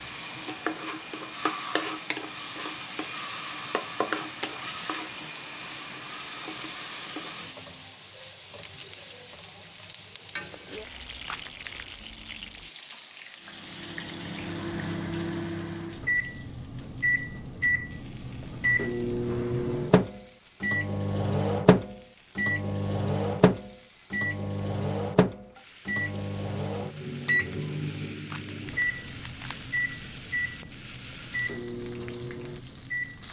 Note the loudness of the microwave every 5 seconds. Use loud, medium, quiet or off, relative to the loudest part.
off, off, medium, loud, loud, loud, medium.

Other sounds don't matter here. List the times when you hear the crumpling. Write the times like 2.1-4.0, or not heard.
11.2-11.9, 28.2-29.8.